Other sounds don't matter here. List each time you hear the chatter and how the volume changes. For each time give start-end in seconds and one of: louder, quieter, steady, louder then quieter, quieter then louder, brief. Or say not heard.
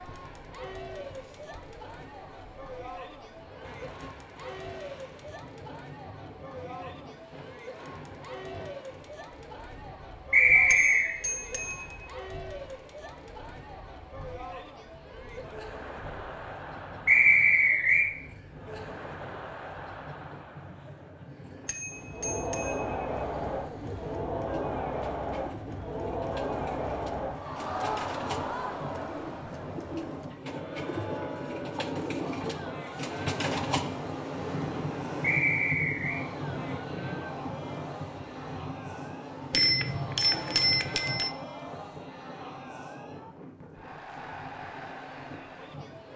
0.0-46.1 louder then quieter.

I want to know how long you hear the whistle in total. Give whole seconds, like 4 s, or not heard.
3 s.